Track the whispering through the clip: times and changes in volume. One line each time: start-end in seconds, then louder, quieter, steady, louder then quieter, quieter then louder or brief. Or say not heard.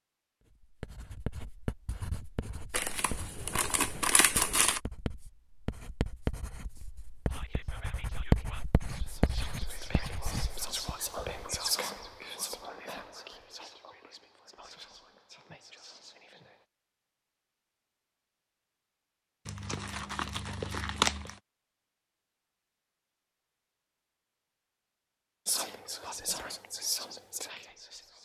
7.2-16.6 louder then quieter
25.4-28.1 brief.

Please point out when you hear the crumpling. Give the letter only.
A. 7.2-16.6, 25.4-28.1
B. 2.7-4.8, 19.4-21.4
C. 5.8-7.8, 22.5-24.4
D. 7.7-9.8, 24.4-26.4
B.